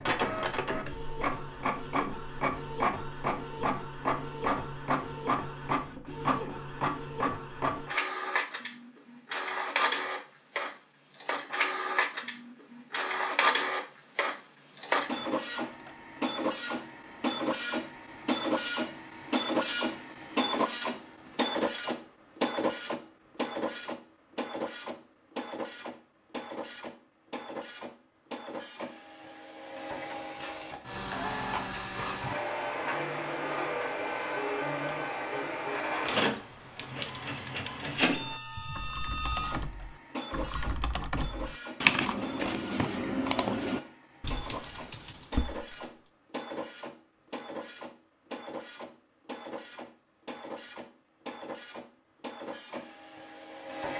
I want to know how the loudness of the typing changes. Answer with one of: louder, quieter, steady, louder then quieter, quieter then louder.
louder then quieter.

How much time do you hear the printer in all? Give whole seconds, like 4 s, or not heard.
54 s.